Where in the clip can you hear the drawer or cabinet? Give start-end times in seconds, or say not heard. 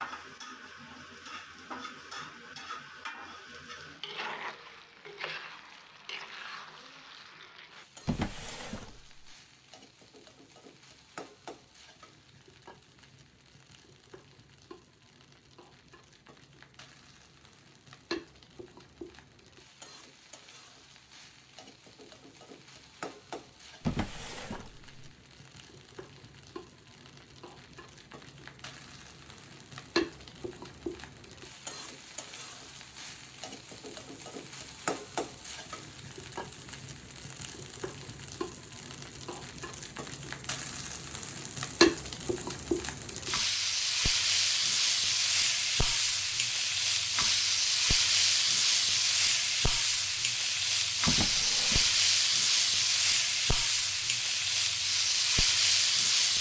8.1-9.2, 23.8-24.9, 51.0-52.0.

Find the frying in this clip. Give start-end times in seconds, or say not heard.
0.0-56.3.